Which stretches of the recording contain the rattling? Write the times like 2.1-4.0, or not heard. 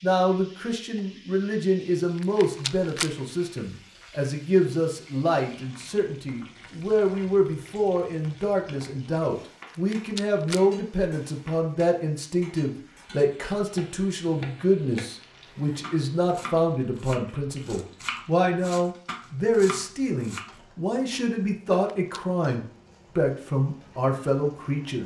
2.1-3.1, 9.7-10.6, 21.7-22.2.